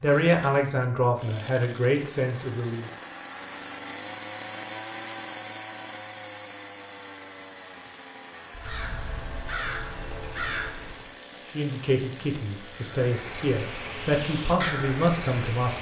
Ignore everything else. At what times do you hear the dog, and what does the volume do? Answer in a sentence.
You can't hear the dog here.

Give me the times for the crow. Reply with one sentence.
The crow can be heard from 8.5 to 11.2 s and from 12.8 to 15.7 s.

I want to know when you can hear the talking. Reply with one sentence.
You can hear the talking from 0.0 to 2.9 s and from 11.5 to 15.7 s.